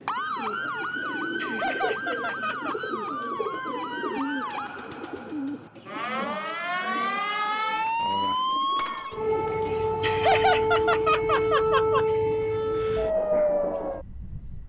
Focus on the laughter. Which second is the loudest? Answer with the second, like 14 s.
10 s.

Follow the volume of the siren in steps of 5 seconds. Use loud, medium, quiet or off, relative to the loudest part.
medium, loud, loud.